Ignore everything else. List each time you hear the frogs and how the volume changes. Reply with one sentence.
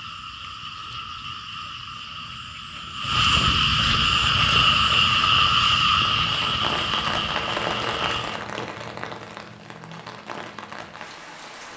The frogs can be heard from 0.0 to 8.4 s, getting louder then quieter.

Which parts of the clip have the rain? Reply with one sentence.
The rain can be heard from 4.0 to 11.7 s.